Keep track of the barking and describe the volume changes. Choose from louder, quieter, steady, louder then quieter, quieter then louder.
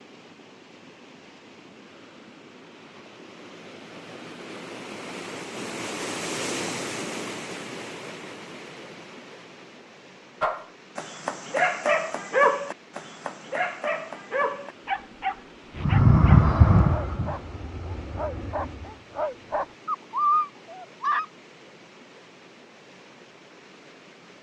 quieter then louder.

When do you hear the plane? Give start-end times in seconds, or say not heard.
15.8-19.0.